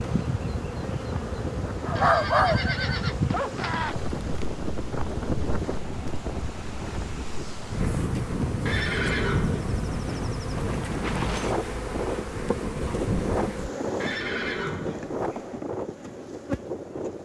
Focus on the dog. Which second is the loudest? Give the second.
2 s.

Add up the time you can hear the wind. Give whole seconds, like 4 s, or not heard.
17 s.